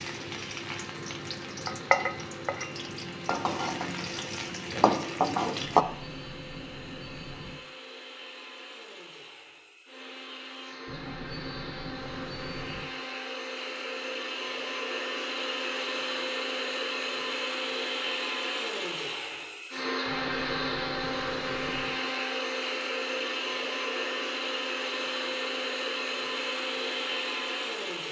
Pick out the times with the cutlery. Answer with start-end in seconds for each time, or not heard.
not heard.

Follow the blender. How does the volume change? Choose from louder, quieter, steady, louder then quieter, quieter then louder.
louder.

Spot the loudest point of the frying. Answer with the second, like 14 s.
5 s.